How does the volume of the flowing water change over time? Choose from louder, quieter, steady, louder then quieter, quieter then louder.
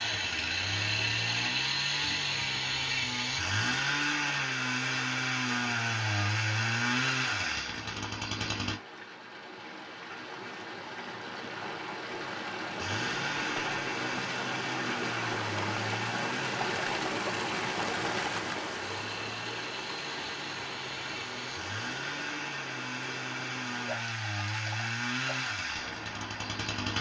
louder then quieter.